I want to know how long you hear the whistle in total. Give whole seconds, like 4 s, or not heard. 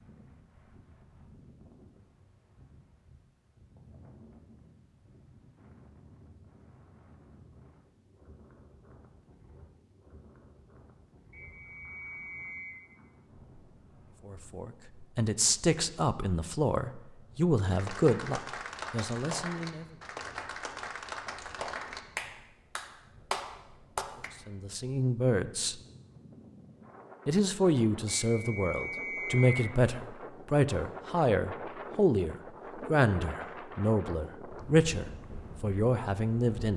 3 s.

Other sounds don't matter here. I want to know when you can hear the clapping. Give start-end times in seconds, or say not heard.
17.7-24.3.